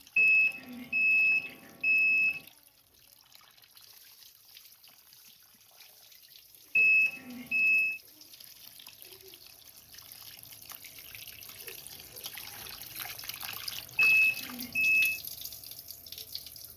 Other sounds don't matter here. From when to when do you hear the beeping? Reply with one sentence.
You can hear the beeping from 0.1 to 2.4 s, from 6.8 to 8.0 s and from 13.9 to 15.2 s.